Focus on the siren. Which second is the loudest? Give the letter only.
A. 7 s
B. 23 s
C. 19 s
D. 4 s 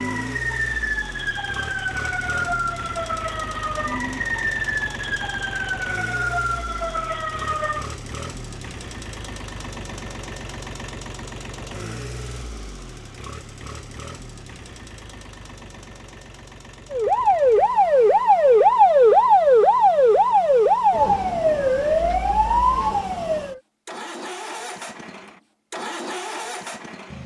C.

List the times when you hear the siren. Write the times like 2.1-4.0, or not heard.
0.0-8.0, 16.9-23.6.